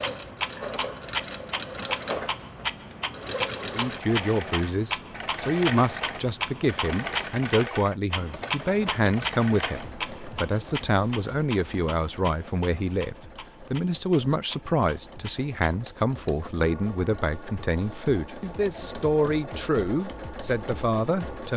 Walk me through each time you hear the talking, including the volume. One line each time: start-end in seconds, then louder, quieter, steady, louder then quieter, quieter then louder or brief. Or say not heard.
3.7-21.5 steady.